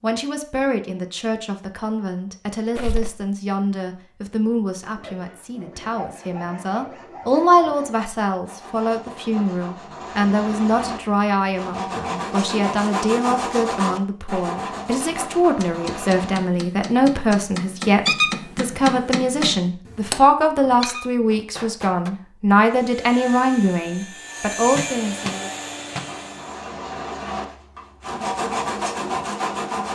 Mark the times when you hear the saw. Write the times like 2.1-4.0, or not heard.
4.8-16.5, 25.9-29.9.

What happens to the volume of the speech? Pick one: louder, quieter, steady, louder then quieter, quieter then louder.
louder.